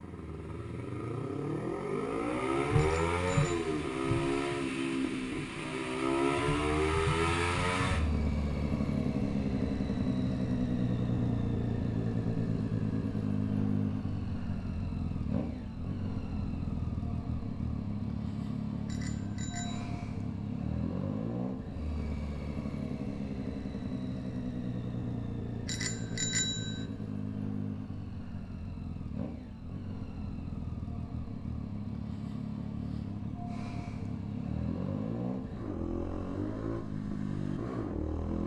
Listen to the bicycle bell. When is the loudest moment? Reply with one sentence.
The volume of the bicycle bell peaks at 26 seconds.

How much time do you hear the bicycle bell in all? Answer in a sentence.
You can hear the bicycle bell for 3 seconds altogether.